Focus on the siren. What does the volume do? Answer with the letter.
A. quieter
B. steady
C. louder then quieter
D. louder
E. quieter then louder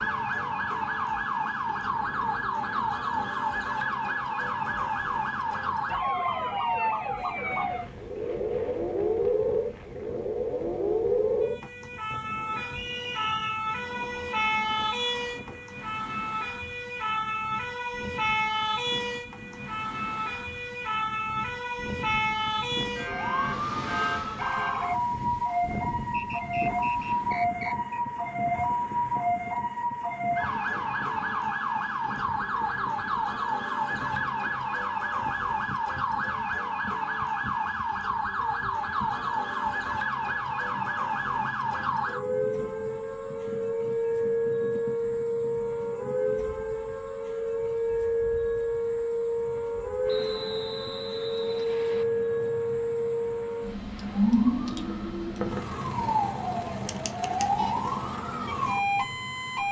B.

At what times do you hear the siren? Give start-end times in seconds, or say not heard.
0.0-59.6.